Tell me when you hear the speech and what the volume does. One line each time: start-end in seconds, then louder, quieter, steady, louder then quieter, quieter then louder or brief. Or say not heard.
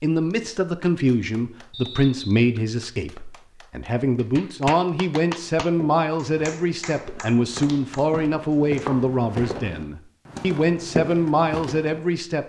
0.0-12.4 steady.